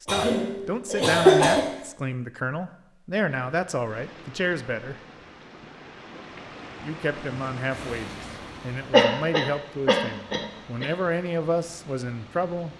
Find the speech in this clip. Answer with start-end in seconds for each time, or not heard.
0.0-5.0, 6.8-12.7.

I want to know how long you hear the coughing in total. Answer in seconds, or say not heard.
4 s.